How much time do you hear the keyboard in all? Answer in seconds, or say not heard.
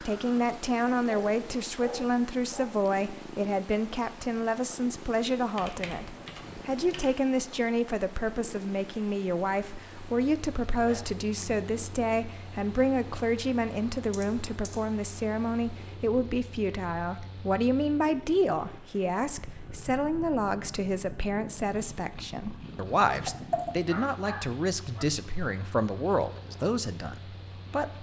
3 s.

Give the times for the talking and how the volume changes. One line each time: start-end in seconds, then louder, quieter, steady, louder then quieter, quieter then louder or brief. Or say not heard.
0.0-27.9 steady.